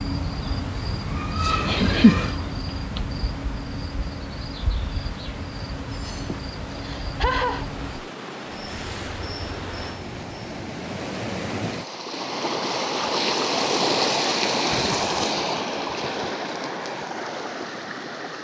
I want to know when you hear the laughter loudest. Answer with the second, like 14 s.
2 s.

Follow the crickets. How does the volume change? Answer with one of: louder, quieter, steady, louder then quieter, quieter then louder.
quieter.